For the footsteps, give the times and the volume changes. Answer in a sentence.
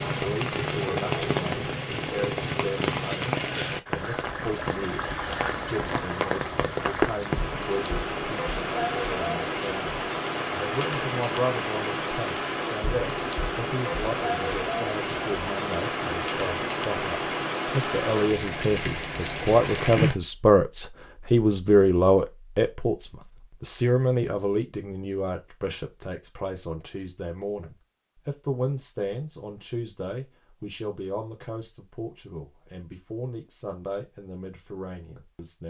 The footsteps can't be heard in this clip.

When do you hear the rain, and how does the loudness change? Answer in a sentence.
The rain can be heard from 0.0 to 20.2 s, at a steady volume.